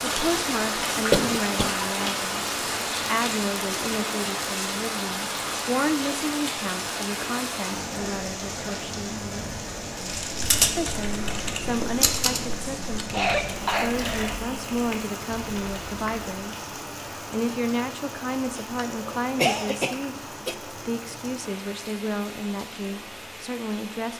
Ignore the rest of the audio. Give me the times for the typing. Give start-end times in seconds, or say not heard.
10.2-16.3.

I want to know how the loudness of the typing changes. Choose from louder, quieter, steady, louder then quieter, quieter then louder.
quieter.